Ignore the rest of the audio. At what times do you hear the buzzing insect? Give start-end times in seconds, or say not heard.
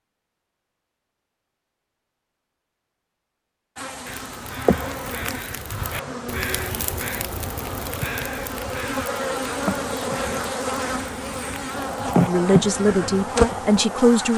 3.8-14.3.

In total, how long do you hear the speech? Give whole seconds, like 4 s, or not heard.
2 s.